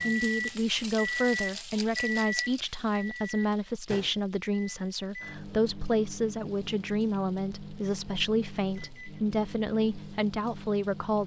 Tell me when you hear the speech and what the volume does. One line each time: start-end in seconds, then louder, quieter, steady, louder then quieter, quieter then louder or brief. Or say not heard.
0.0-11.2 steady.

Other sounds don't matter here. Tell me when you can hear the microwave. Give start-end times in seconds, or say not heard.
0.0-11.2.